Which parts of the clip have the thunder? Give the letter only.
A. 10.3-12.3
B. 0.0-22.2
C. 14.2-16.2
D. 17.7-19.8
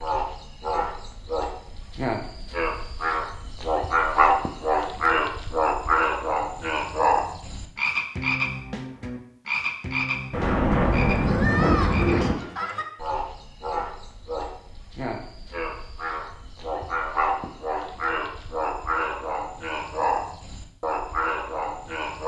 A.